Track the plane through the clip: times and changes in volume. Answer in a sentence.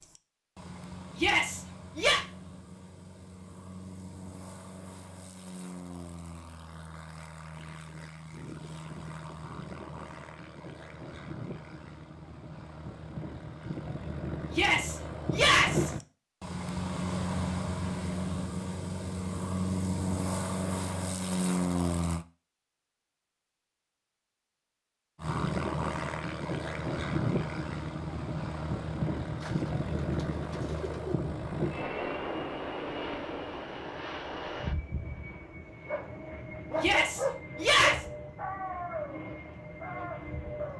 The plane can be heard from 0.0 to 22.2 s, getting louder; and from 25.1 to 40.7 s, getting quieter.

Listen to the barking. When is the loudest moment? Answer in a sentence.
The loudest moment of the barking is at 37 seconds.